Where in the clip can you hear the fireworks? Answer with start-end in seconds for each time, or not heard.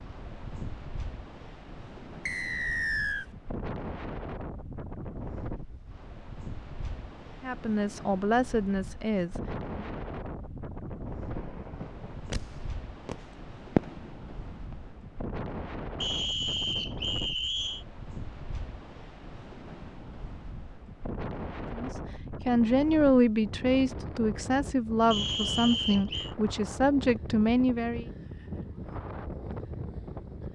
11.2-14.9.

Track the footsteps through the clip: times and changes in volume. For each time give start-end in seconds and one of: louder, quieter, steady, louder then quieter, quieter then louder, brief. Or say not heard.
not heard.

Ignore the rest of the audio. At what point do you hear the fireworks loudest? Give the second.
14 s.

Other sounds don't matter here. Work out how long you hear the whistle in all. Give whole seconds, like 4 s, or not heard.
4 s.